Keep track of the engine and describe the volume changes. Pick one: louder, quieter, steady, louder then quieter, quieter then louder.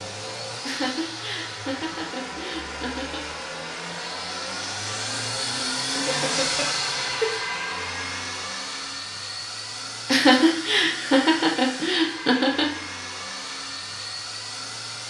louder then quieter.